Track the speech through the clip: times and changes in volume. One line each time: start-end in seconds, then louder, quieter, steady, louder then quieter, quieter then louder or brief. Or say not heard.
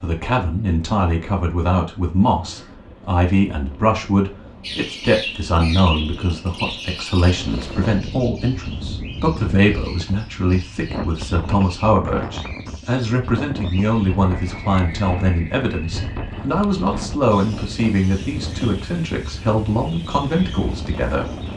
0.0-21.4 steady.